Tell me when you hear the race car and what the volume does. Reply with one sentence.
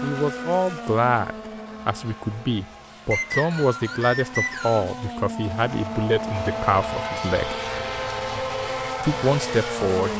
The race car can be heard from 0.0 to 10.1 s, getting quieter then louder.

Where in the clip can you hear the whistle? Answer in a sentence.
You can hear the whistle from 3.1 to 4.9 s.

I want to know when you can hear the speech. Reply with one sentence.
The speech can be heard from 0.0 to 7.5 s and from 9.0 to 10.1 s.